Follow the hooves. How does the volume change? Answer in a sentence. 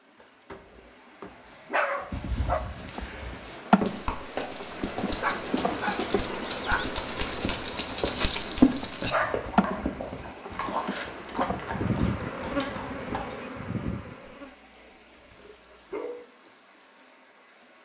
The volume of the hooves goes up, then down.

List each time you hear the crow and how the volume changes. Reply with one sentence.
You can't hear the crow here.